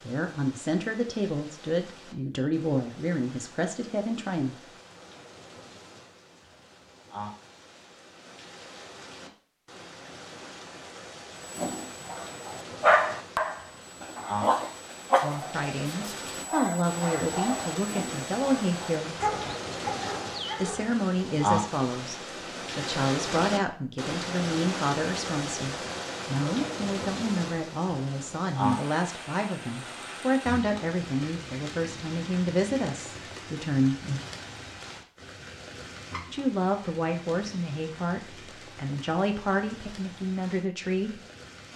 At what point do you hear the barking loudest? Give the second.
13 s.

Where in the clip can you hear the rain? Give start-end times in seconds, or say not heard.
0.0-41.7.